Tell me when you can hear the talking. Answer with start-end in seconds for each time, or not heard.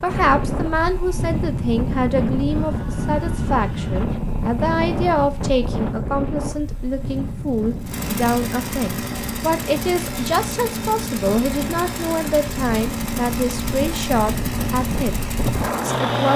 0.0-15.2, 15.8-16.3.